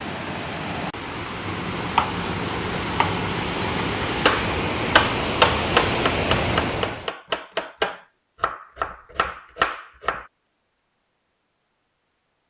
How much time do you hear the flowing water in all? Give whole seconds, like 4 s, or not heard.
7 s.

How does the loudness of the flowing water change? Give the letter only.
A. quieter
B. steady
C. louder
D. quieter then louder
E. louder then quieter
C.